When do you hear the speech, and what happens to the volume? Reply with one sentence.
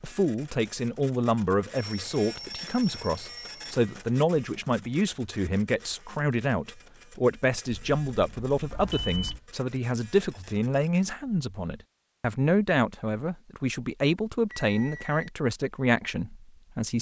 You can hear the speech from 0.0 to 16.9 s, at a steady volume.